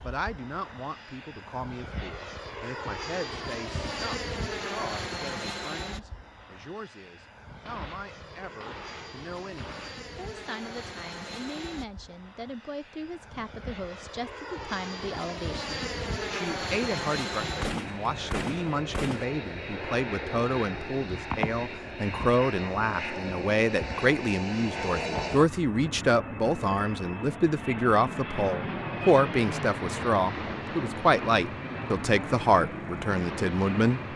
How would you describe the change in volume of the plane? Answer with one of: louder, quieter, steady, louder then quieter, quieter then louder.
quieter then louder.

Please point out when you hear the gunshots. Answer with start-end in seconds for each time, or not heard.
7.5-10.1, 17.4-19.2.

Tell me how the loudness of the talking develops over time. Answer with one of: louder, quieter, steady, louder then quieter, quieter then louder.
louder.